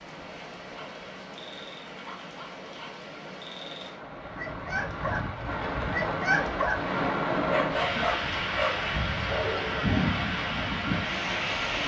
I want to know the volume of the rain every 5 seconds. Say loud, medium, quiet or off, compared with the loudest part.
quiet, loud, loud.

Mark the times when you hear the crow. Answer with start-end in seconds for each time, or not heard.
not heard.